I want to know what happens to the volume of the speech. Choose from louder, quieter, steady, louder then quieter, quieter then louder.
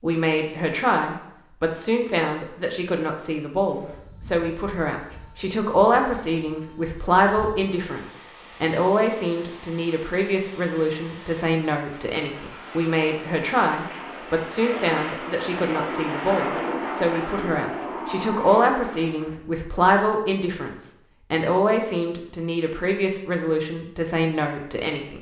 steady.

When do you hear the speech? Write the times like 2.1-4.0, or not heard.
0.0-25.1.